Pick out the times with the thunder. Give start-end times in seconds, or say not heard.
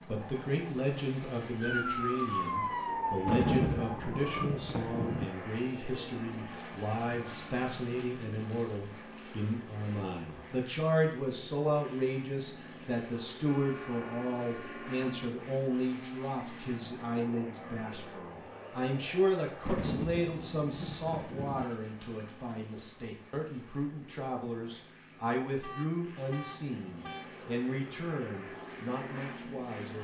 3.2-5.2, 19.6-21.6.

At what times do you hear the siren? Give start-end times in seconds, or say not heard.
1.6-4.5.